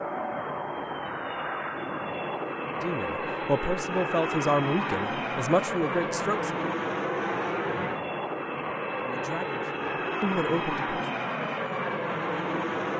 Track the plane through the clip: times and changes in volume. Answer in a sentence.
The plane can be heard from 0.0 to 12.9 s, at a steady volume.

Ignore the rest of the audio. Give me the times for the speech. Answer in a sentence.
You can hear the speech from 2.8 to 6.5 s and from 9.0 to 11.0 s.